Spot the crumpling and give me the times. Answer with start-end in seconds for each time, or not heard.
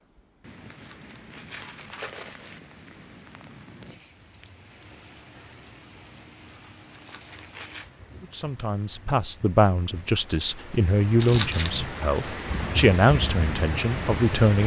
0.7-2.6, 6.9-7.9, 11.2-11.8.